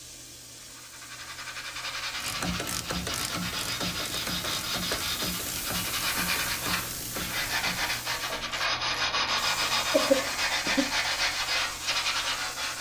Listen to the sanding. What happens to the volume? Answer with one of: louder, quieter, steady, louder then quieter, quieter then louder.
louder.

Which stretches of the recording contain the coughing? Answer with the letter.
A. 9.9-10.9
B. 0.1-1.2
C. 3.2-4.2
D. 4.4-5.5
A.